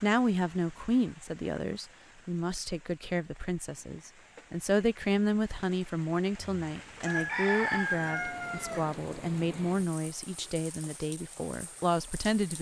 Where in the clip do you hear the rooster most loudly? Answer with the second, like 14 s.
8 s.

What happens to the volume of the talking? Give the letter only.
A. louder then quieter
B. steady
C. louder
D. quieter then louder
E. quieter
B.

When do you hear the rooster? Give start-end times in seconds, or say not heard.
6.3-8.9.